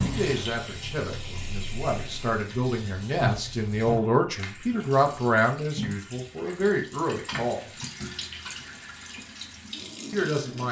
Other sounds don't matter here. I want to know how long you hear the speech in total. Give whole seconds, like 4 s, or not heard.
8 s.